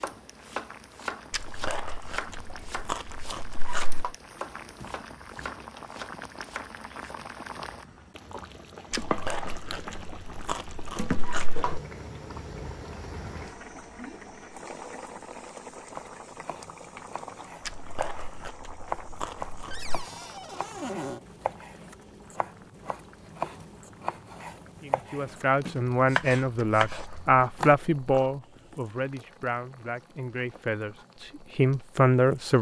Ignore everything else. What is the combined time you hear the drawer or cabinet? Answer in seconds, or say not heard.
3 s.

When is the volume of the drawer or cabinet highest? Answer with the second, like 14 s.
21 s.